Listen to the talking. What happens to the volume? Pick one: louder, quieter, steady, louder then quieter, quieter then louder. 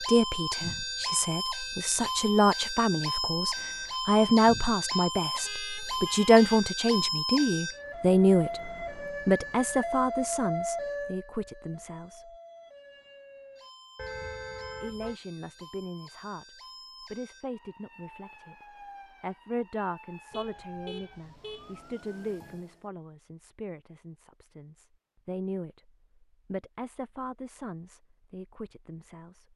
quieter.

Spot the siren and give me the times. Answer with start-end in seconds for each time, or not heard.
0.0-22.9.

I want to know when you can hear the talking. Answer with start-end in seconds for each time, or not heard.
0.0-12.3, 14.8-18.6, 19.2-29.5.